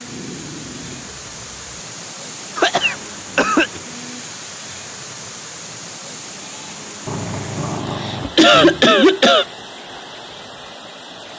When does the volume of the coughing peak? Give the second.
9 s.